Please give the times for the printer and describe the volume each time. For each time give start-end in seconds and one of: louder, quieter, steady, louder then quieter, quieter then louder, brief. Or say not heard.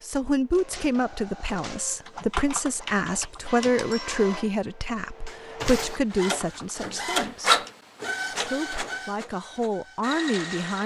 0.0-10.8 louder then quieter.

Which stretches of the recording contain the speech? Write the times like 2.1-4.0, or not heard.
0.0-7.6, 8.3-10.8.